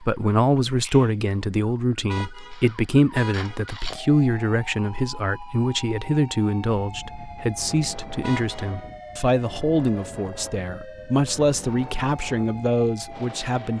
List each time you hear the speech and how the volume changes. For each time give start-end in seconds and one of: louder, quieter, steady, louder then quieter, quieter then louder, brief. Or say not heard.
0.0-13.7 steady.